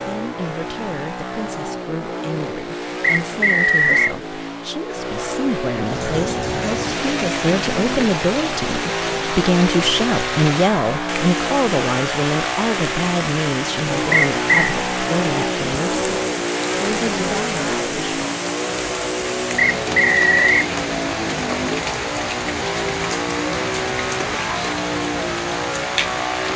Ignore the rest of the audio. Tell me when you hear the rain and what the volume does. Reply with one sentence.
The rain can be heard from 5.8 to 26.5 s, at a steady volume.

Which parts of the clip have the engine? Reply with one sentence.
The engine can be heard from 0.0 to 26.5 s.